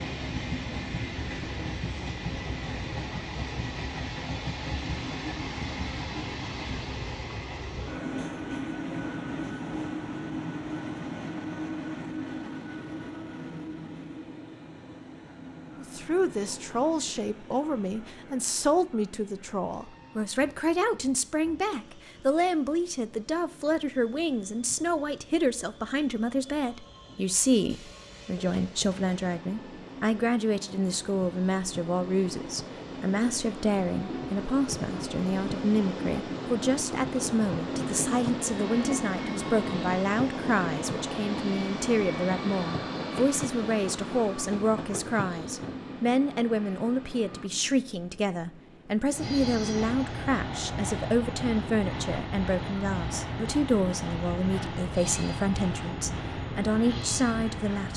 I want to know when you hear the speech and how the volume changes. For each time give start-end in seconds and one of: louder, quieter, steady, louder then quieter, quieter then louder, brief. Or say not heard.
15.8-57.9 steady.